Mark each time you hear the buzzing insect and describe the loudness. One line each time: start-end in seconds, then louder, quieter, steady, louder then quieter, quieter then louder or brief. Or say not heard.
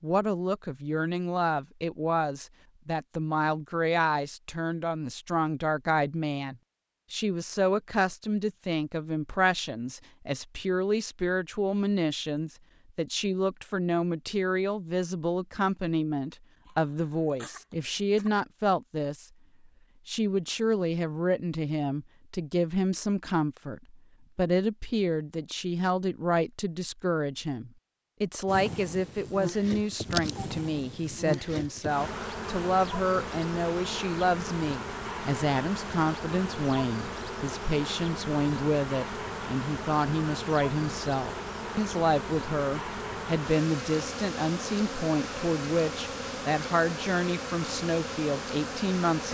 28.4-49.3 steady.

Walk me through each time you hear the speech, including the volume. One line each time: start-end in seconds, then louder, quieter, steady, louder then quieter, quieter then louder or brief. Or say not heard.
0.0-19.2 steady
20.1-49.3 steady.